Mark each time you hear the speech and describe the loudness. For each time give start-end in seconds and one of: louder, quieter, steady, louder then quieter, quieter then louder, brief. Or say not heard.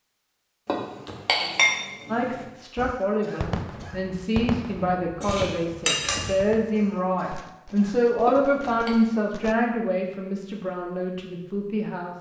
2.0-12.1 louder then quieter.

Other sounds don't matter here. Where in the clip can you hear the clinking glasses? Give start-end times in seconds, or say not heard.
0.7-2.5, 5.2-6.3, 8.2-8.9.